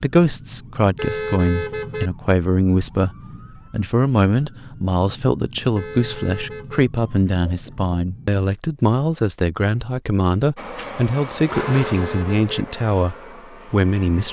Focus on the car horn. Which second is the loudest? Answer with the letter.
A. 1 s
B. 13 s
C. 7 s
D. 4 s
A.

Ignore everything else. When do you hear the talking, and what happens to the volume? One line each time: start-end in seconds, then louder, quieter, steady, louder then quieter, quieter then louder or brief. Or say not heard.
0.0-14.2 steady.